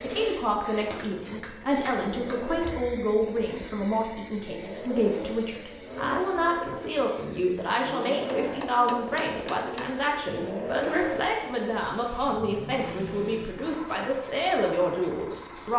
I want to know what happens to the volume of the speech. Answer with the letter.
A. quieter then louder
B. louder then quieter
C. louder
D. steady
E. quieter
D.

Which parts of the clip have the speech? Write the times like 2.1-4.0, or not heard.
0.0-15.7.